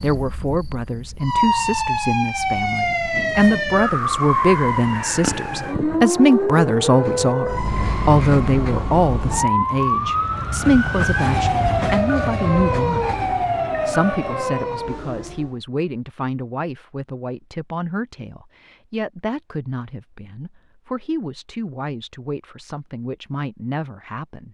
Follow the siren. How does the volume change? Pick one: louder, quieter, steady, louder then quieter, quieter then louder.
steady.